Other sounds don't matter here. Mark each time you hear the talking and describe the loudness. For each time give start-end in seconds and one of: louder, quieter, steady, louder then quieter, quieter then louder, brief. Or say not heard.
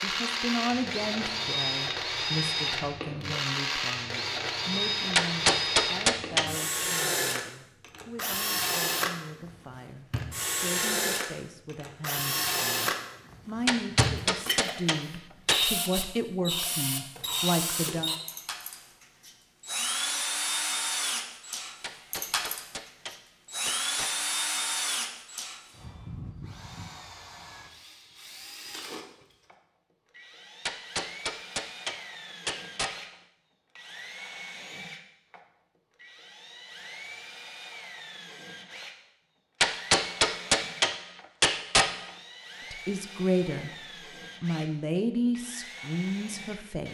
0.0-18.1 quieter then louder
42.7-43.7 brief
44.4-46.9 brief.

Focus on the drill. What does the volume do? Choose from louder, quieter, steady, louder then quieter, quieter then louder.
quieter.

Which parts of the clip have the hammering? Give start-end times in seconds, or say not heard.
5.2-6.6, 13.7-15.7, 21.8-24.3, 30.6-33.1, 39.6-42.1.